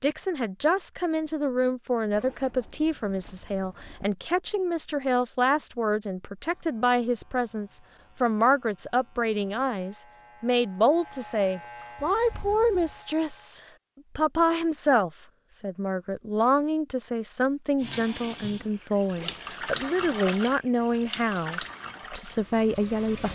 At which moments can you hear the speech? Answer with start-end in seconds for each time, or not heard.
0.0-23.2.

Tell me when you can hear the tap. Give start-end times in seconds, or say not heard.
17.8-23.2.